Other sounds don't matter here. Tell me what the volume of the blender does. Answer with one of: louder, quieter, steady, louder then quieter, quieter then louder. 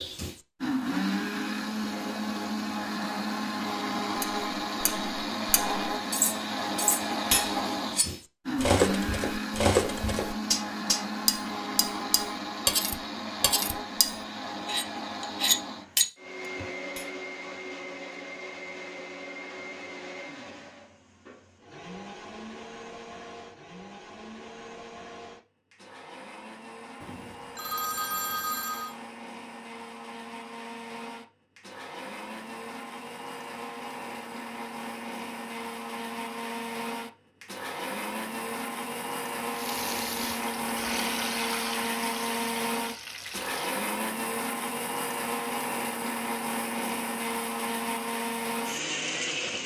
quieter then louder.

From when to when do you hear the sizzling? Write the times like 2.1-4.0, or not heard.
39.5-43.8.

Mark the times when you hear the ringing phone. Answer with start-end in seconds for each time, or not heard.
27.0-28.9.